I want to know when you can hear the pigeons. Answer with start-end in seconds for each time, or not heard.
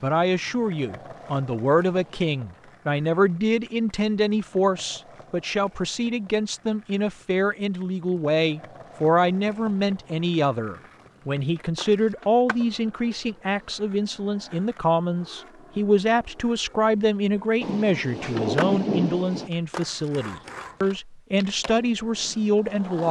not heard.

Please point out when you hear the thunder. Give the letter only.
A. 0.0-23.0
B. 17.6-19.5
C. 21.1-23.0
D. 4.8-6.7
B.